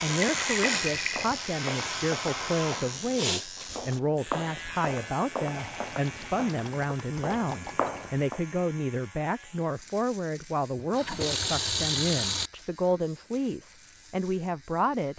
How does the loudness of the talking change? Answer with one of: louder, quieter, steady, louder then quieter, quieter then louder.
steady.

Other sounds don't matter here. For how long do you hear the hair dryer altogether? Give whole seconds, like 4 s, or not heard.
3 s.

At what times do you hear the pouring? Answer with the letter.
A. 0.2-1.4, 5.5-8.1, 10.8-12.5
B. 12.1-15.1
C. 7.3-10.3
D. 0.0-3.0
A.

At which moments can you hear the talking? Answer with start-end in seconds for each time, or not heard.
0.0-15.1.